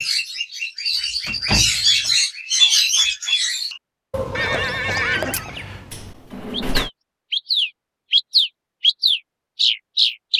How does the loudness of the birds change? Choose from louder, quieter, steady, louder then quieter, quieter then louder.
quieter then louder.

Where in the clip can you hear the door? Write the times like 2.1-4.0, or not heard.
1.2-2.1, 5.9-6.9.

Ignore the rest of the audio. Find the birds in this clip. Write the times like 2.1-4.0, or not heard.
0.0-10.3.